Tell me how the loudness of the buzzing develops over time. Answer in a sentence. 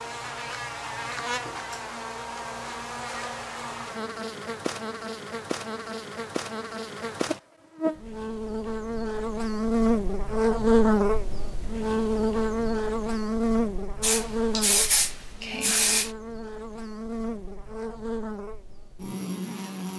The volume of the buzzing goes up, then down.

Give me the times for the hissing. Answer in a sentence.
You can hear the hissing from 14.0 to 16.1 s.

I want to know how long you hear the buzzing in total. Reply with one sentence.
The buzzing can be heard for 20 seconds in total.